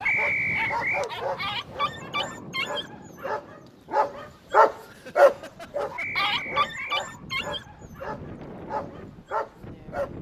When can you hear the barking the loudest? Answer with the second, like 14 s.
5 s.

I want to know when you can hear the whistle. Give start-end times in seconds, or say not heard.
0.1-1.1, 6.0-7.0.